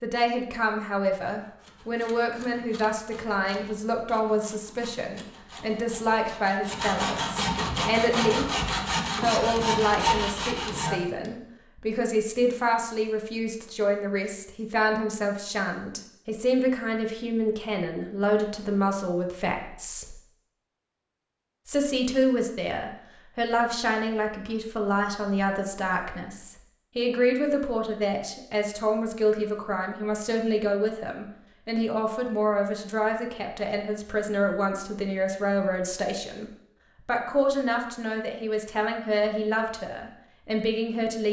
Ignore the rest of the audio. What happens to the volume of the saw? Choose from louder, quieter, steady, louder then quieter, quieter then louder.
louder.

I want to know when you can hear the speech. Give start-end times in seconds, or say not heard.
0.0-8.6, 9.2-20.1, 21.6-41.2.